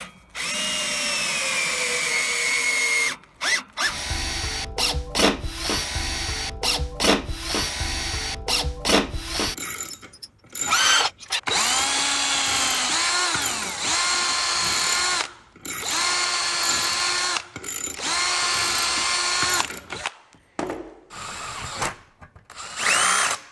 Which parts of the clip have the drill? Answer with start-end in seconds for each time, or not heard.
0.0-23.4.